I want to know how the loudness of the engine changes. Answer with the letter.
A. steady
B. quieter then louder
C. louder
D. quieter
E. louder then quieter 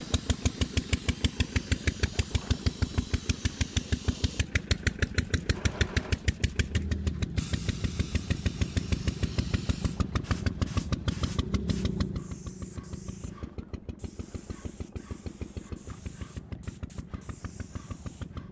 D.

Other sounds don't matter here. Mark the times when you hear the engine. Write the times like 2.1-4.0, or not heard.
0.0-18.4.